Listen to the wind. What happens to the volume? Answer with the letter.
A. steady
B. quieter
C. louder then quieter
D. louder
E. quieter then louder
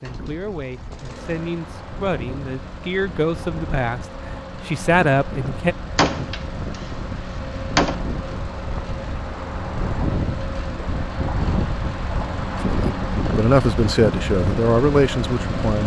D.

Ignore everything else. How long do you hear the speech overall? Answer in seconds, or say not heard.
9 s.